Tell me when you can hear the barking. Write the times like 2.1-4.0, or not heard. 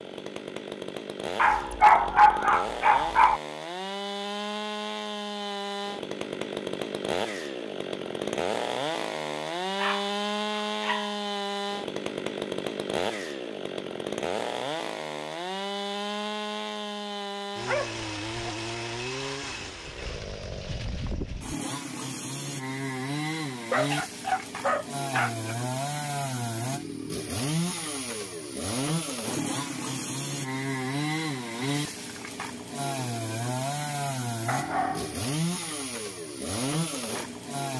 1.4-3.4, 9.8-11.2, 17.6-18.6, 23.7-25.6, 34.5-35.2.